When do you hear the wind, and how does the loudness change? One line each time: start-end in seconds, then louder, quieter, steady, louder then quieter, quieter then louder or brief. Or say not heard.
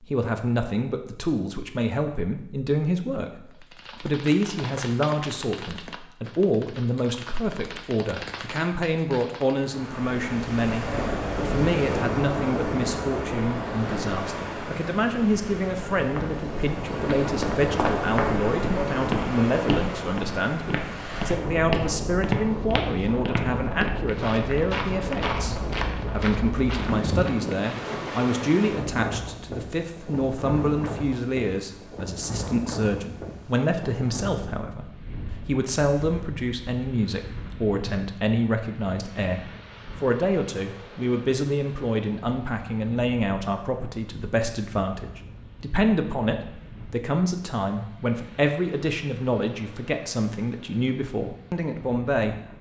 9.6-52.5 quieter.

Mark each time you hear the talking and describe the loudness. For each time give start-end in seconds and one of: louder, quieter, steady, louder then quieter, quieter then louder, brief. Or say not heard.
0.0-52.4 steady.